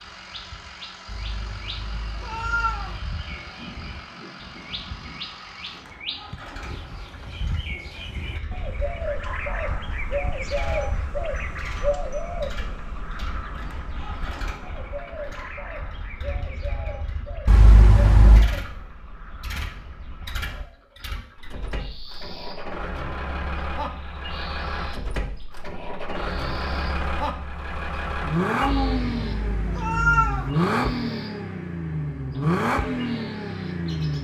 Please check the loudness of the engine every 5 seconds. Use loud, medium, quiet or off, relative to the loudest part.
quiet, quiet, quiet, quiet, medium, loud, loud.